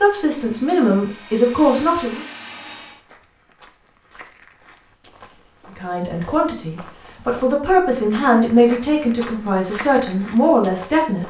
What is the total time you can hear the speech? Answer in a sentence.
The speech can be heard for 8 seconds in total.